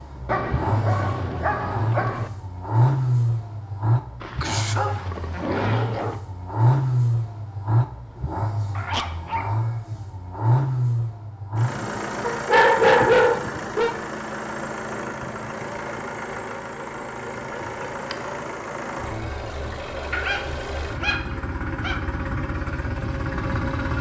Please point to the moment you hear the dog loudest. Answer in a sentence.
The loudest moment of the dog is at 13 seconds.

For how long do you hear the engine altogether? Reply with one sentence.
The engine can be heard for 24 seconds in total.